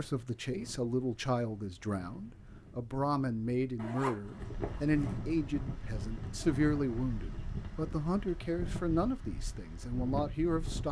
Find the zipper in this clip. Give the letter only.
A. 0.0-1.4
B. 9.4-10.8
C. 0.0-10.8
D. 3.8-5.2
D.